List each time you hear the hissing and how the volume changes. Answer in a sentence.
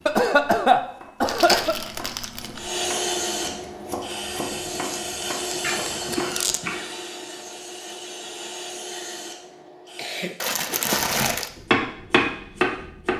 The hissing can be heard from 2.5 to 10.4 s, getting quieter.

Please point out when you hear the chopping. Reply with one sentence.
You can hear the chopping from 0.0 to 6.5 s and from 10.9 to 13.1 s.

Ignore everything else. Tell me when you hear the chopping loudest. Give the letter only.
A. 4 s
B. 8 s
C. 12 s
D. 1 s
C.